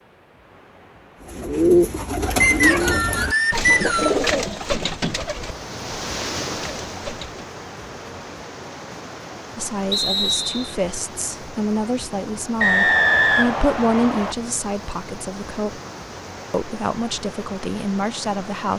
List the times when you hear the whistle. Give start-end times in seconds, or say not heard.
2.4-4.2, 9.9-10.8, 12.6-14.3.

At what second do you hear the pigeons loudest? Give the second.
2 s.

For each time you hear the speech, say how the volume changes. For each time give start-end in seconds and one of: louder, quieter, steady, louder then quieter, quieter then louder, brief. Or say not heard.
9.6-15.8 louder then quieter
16.5-18.7 brief.